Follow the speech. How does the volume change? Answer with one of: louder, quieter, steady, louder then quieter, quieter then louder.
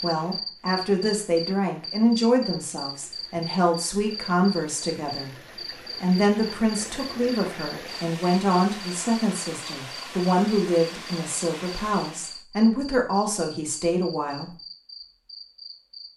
steady.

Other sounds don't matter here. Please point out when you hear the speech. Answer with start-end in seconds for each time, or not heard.
0.0-14.6.